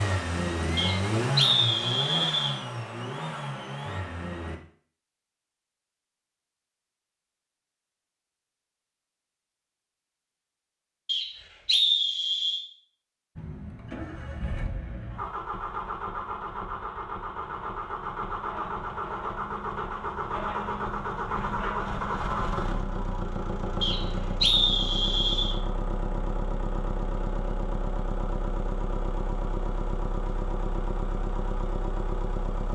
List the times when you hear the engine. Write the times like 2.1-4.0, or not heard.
0.0-4.6, 13.3-32.7.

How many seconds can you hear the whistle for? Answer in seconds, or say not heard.
5 s.